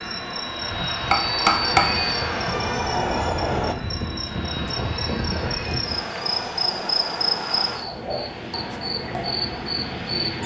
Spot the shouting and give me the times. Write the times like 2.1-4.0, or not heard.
not heard.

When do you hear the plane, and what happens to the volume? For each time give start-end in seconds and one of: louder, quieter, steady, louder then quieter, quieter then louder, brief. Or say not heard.
0.0-10.4 quieter.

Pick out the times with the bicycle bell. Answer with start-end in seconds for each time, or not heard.
1.1-2.1.